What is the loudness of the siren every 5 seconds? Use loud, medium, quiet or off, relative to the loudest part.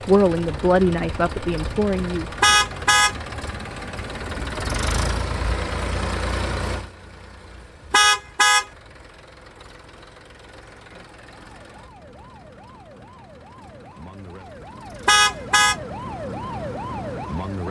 off, off, quiet, loud.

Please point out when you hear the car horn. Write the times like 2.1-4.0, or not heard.
2.4-3.1, 7.9-8.7, 15.1-15.8.